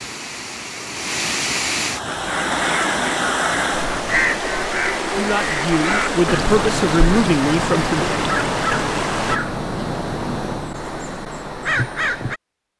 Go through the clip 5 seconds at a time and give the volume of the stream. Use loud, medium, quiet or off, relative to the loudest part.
loud, loud, off.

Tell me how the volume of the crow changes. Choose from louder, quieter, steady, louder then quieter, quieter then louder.
steady.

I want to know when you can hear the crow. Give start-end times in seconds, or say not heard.
2.0-12.4.